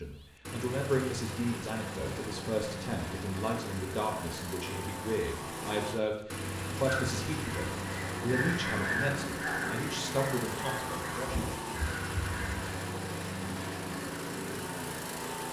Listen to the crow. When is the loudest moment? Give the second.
9 s.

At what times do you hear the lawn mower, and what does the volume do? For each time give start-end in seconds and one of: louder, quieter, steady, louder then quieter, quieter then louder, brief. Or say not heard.
0.0-15.4 steady.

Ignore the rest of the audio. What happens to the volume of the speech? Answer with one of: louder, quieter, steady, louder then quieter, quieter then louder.
steady.